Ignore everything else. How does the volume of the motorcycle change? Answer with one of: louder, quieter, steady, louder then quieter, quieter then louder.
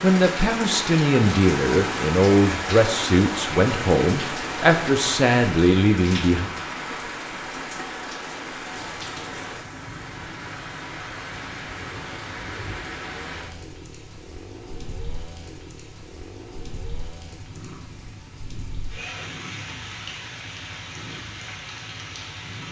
steady.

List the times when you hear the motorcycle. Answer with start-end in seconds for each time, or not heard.
8.7-22.6.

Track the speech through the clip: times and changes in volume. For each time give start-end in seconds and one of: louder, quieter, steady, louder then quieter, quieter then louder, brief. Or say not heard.
0.0-6.5 steady.